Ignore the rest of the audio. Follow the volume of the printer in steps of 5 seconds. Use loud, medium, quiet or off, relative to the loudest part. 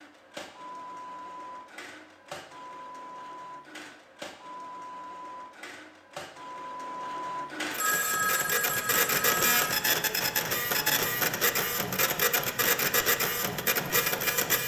quiet, loud, loud.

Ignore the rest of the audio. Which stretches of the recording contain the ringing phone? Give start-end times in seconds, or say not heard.
7.8-9.7.